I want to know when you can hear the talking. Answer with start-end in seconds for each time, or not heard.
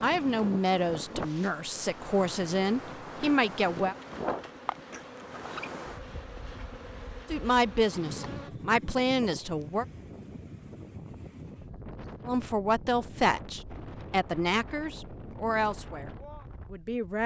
0.0-4.0, 7.3-9.8, 12.2-17.2.